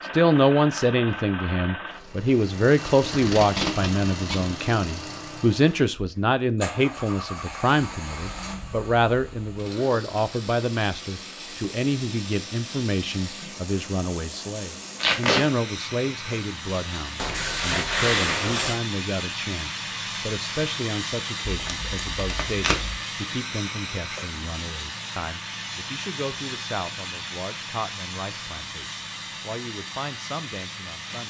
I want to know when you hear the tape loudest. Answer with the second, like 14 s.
15 s.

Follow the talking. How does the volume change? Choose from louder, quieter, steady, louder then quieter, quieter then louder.
quieter.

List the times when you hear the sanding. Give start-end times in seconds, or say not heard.
17.1-18.8.